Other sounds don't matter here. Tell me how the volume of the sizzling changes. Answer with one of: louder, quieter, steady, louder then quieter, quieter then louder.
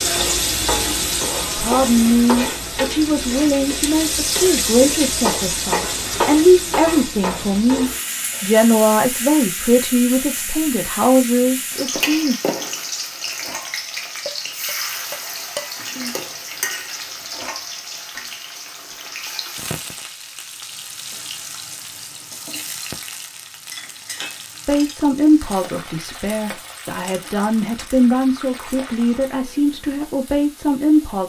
quieter.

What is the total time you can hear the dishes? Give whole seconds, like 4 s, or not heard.
6 s.